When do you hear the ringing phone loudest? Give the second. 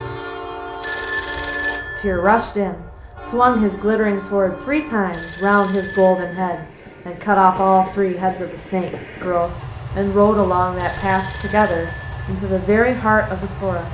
2 s.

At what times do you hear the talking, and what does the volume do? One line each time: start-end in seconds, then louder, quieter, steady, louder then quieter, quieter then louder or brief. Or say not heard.
1.9-13.8 steady.